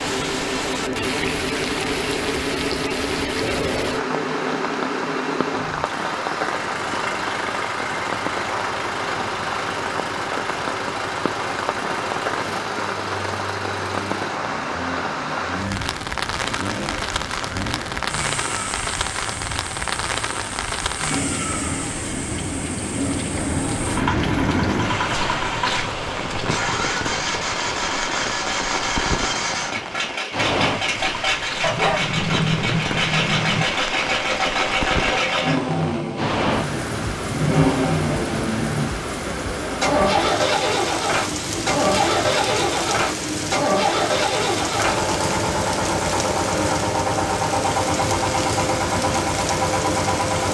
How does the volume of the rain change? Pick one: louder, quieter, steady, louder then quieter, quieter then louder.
steady.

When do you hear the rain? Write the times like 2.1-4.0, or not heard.
0.0-50.4.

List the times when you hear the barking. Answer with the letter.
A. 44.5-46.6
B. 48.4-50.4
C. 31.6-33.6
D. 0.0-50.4
C.